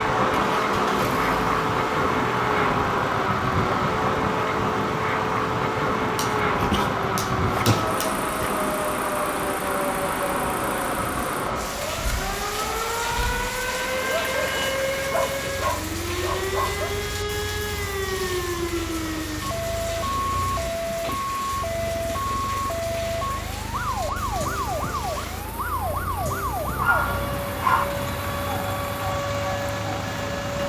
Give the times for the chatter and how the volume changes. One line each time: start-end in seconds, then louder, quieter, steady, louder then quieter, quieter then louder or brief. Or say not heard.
not heard.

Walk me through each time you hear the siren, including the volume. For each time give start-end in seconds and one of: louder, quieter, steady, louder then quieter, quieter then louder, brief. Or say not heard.
0.0-30.6 steady.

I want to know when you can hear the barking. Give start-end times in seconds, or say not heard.
6.2-8.5, 14.0-16.9, 26.8-27.9.